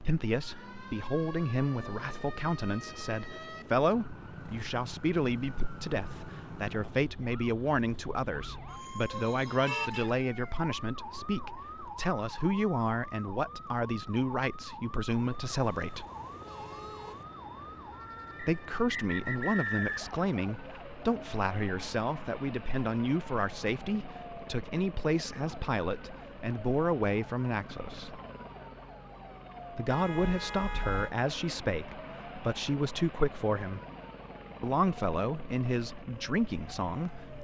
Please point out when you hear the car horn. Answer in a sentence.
The car horn can be heard from 9.1 to 10.1 s, from 15.6 to 17.2 s and from 29.9 to 31.1 s.